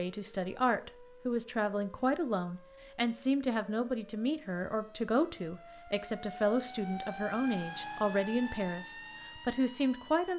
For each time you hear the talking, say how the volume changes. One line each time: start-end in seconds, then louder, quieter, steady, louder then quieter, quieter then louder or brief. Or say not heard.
0.0-10.3 steady.